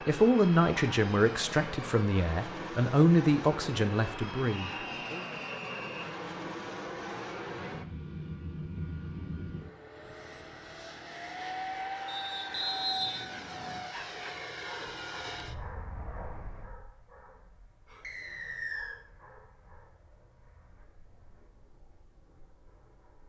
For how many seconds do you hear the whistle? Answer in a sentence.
The whistle can be heard for 4 seconds in total.